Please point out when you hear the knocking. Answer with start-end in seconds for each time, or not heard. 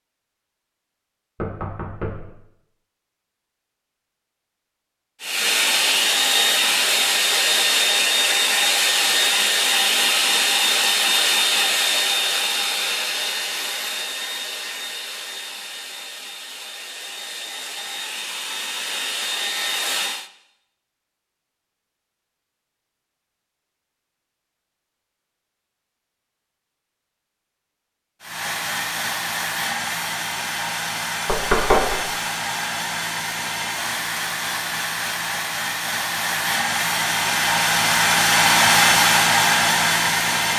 1.4-2.4, 31.2-31.9.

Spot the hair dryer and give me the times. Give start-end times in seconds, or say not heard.
5.2-20.3, 28.2-40.5.